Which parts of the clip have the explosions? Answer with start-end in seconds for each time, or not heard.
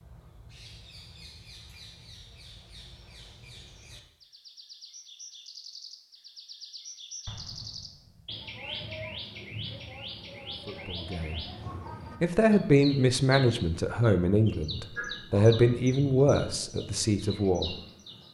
7.2-8.4.